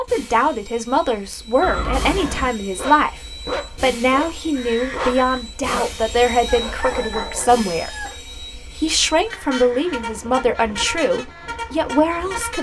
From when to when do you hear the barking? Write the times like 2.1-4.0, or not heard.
2.8-8.2.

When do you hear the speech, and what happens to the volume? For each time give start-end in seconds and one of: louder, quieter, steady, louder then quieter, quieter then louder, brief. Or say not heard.
0.0-12.5 steady.